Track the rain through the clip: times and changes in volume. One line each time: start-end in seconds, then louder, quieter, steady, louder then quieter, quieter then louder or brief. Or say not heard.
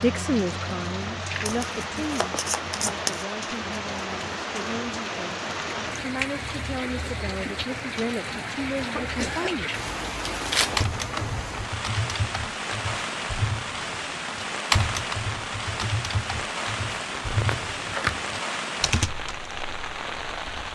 0.0-20.6 steady.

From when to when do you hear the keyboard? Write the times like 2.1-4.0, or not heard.
10.8-19.6.